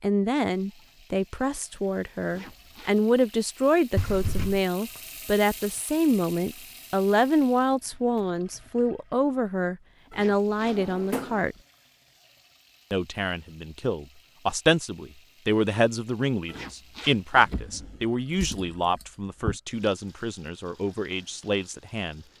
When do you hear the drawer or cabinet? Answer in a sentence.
You can hear the drawer or cabinet from 4.0 to 4.7 s, from 10.6 to 11.4 s and from 17.4 to 19.6 s.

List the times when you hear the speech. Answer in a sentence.
The speech can be heard from 0.0 to 11.6 s and from 12.9 to 22.2 s.